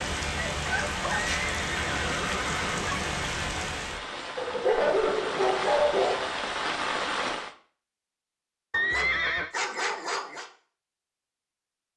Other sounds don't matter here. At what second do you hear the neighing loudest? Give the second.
9 s.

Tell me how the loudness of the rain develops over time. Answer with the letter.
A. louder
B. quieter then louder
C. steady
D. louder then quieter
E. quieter
C.